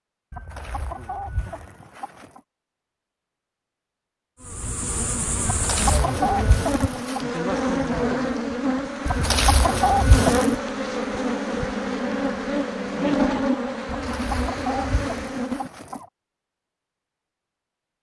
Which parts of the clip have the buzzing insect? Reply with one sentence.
The buzzing insect can be heard from 4.4 to 15.7 s.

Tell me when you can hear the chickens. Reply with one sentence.
You can hear the chickens from 0.3 to 2.4 s, from 5.5 to 7.2 s, from 9.1 to 10.6 s and from 13.8 to 16.1 s.